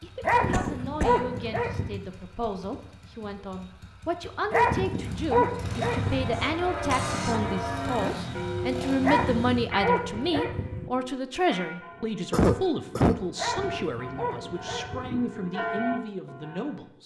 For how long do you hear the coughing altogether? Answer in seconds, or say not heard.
3 s.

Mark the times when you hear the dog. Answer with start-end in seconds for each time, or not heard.
0.2-2.0, 4.5-6.4, 9.0-10.9, 13.3-15.2.